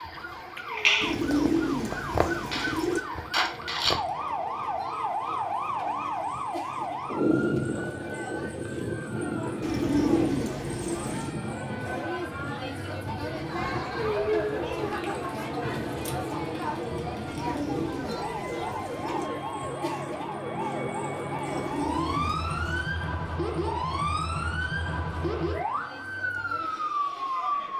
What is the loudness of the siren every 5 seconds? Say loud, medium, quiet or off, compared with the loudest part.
loud, loud, medium, medium, loud, loud.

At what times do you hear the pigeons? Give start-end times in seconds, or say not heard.
1.0-3.0, 9.6-11.3, 17.2-19.3, 21.4-22.9.